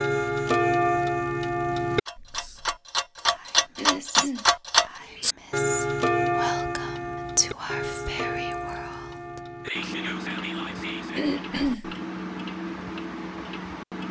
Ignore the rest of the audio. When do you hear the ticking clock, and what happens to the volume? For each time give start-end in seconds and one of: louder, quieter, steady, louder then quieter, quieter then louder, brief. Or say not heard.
0.0-14.0 quieter.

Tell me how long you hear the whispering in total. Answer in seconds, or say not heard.
10 s.